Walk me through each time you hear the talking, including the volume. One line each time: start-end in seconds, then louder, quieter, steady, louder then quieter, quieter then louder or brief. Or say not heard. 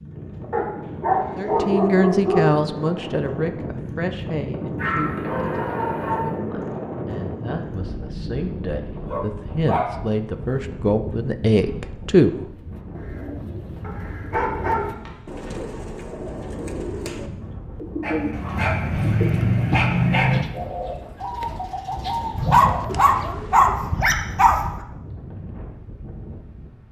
1.4-12.3 quieter then louder.